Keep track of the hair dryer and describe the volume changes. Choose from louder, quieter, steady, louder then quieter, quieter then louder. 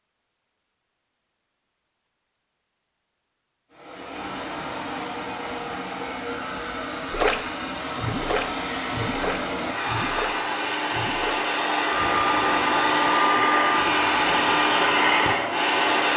louder.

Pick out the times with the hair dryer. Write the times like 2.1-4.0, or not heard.
3.7-16.1.